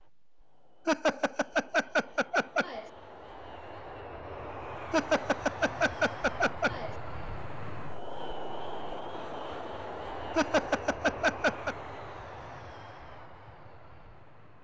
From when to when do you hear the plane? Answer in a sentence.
The plane can be heard from 0.0 to 14.6 s.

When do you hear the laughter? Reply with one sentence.
The laughter can be heard from 0.8 to 2.9 s, from 4.9 to 7.0 s and from 10.3 to 11.8 s.